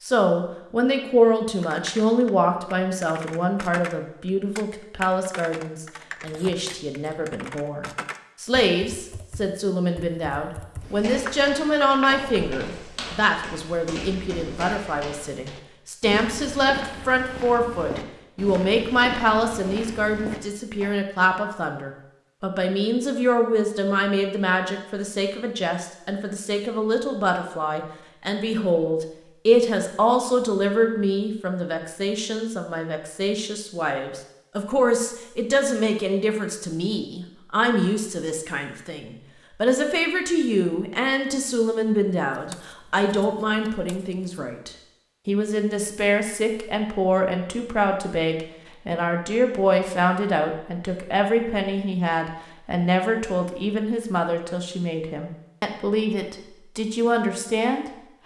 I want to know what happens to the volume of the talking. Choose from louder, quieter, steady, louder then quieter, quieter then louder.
steady.